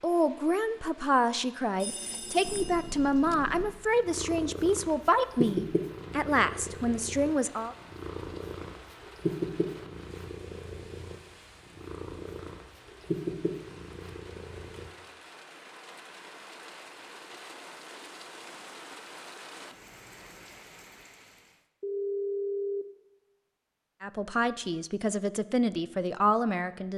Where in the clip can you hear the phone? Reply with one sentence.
You can hear the phone from 1.8 to 3.4 s and from 21.8 to 22.9 s.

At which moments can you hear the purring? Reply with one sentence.
You can hear the purring from 2.4 to 14.9 s.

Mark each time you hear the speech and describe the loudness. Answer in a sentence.
You can hear the speech from 0.0 to 7.8 s, at a steady volume; and briefly from 24.0 to 26.9 s.